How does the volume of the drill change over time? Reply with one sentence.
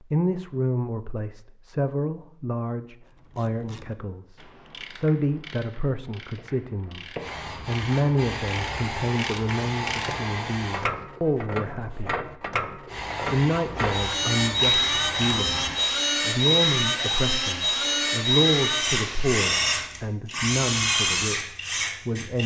The volume of the drill stays about the same.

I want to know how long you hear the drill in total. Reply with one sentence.
You can hear the drill for 9 seconds altogether.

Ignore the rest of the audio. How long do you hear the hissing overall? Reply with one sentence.
You can hear the hissing for 11 seconds altogether.